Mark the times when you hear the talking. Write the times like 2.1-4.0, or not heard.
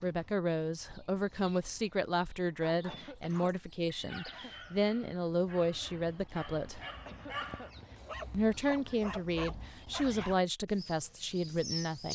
0.0-6.8, 8.3-12.1.